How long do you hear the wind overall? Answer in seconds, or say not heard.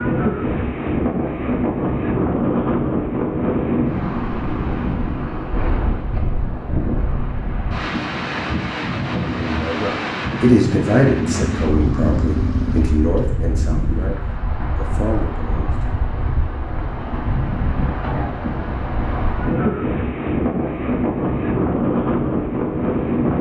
23 s.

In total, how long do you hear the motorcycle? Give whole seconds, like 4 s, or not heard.
3 s.